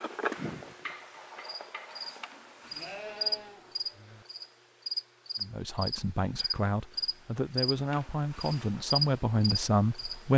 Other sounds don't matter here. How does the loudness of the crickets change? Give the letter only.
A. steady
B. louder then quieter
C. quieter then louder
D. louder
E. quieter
D.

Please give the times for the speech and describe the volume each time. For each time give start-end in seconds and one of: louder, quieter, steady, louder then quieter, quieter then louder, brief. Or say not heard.
5.4-10.3 louder.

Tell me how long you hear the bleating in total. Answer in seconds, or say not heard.
2 s.